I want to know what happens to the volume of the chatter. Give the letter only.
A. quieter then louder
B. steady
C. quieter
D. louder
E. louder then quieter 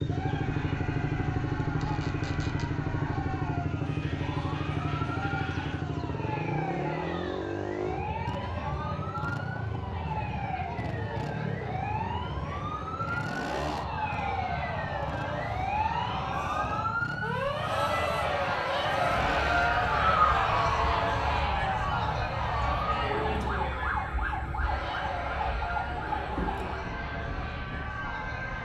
E.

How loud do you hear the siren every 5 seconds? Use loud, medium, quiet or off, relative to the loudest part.
quiet, medium, medium, loud, loud, medium.